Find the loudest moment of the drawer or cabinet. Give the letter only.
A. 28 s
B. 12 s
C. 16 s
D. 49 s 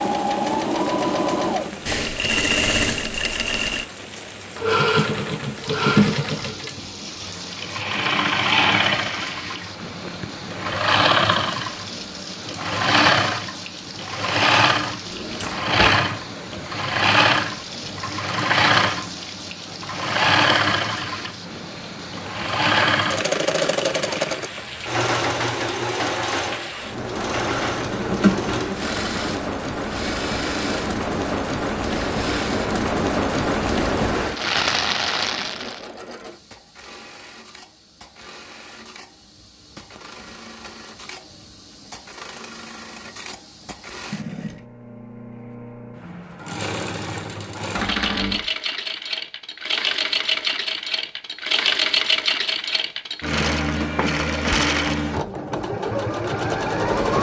A.